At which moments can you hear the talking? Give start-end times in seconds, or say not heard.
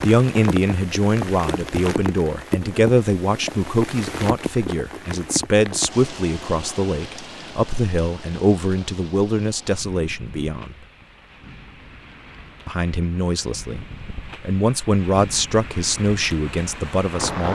0.0-10.8, 12.7-17.4.